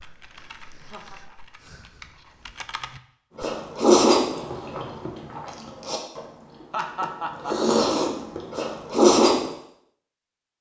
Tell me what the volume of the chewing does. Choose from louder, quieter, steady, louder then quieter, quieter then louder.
quieter then louder.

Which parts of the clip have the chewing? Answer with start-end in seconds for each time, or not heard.
3.4-9.5.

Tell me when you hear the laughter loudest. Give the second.
7 s.